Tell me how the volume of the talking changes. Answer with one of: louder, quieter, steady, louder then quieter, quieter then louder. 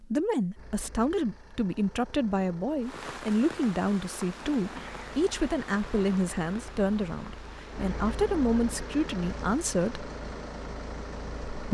steady.